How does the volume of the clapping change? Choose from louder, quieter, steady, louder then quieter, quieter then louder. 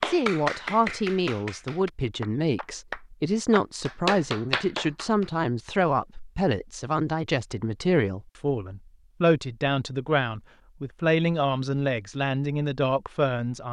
quieter then louder.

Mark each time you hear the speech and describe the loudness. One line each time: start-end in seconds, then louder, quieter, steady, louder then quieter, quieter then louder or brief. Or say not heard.
0.1-13.6 steady.